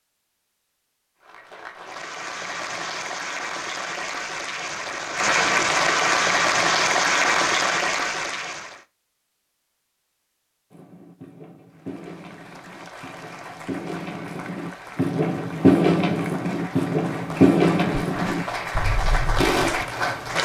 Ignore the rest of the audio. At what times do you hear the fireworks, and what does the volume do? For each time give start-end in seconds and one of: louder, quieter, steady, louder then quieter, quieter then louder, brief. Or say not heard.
10.7-19.9 louder then quieter.